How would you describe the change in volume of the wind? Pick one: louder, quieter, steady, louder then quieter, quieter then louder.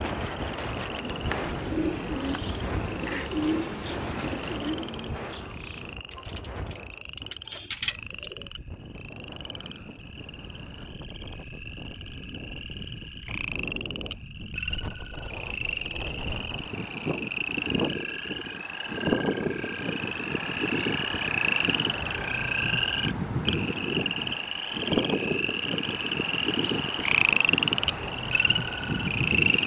quieter then louder.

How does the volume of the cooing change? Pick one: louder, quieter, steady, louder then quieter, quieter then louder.
quieter then louder.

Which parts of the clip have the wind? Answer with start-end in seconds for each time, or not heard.
0.0-29.6.